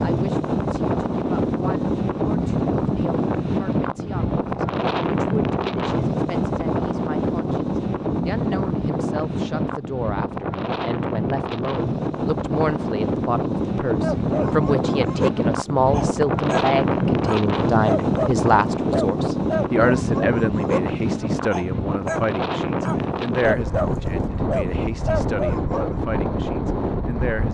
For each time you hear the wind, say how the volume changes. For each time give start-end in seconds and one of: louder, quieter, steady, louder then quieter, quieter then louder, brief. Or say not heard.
0.0-27.4 steady.